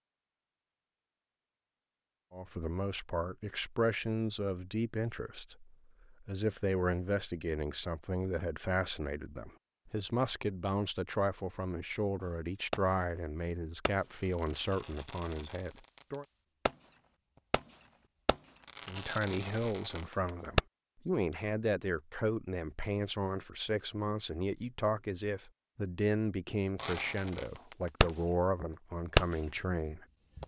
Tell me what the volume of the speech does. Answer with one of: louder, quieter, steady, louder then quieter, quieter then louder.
steady.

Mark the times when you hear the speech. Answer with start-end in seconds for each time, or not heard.
2.3-16.2, 18.9-30.4.